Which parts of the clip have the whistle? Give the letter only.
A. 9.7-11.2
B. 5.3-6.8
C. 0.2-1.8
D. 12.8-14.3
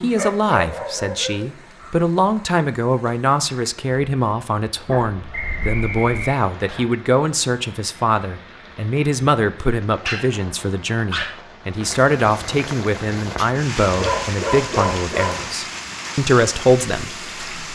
B.